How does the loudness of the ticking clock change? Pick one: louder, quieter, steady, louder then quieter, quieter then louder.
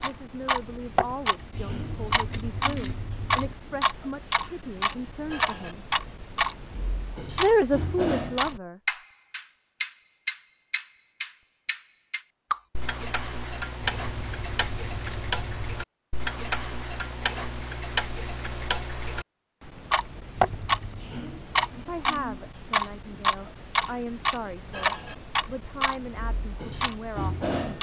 steady.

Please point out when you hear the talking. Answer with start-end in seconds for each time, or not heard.
0.0-5.8, 7.4-9.0, 21.9-27.4.